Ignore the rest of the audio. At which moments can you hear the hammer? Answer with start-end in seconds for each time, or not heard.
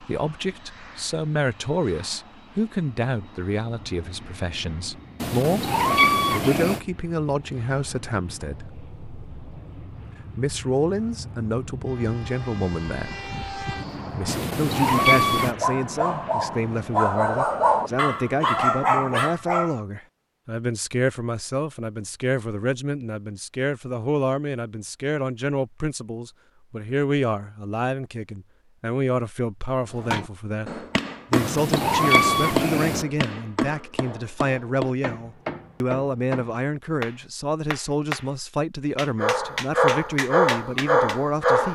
29.9-38.3, 39.0-41.1.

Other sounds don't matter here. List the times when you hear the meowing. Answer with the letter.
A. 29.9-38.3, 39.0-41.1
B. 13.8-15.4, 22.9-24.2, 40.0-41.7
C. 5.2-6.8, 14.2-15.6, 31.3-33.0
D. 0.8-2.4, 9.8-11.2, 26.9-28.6
C.